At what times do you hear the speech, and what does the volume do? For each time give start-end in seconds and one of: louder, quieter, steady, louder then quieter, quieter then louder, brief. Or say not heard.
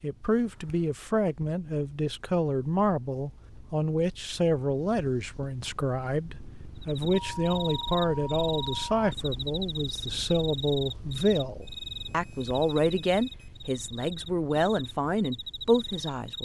0.0-16.4 steady.